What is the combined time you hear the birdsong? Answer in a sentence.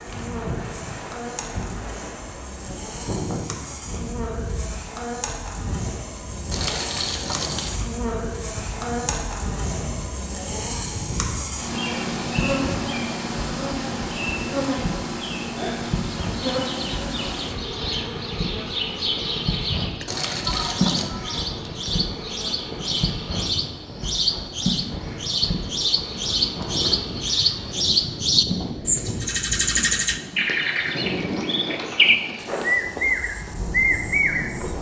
You can hear the birdsong for 19 seconds altogether.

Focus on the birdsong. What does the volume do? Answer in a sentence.
The volume of the birdsong goes up.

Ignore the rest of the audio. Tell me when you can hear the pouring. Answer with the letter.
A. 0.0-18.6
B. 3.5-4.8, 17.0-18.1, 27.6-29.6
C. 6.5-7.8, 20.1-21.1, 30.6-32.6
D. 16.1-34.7
C.